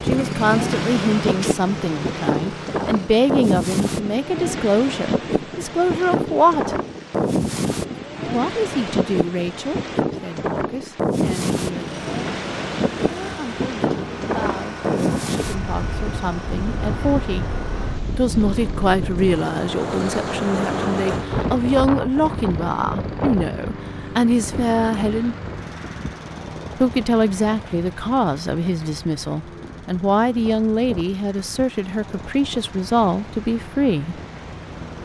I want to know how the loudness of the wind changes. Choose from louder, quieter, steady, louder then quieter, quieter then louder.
quieter.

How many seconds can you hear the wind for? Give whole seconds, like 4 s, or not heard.
35 s.